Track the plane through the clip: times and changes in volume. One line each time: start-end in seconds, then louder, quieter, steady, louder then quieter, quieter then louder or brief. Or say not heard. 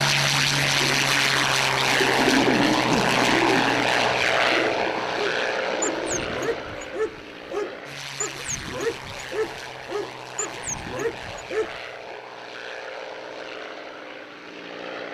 0.0-15.0 quieter.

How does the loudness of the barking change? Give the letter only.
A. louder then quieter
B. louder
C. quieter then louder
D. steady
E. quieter
D.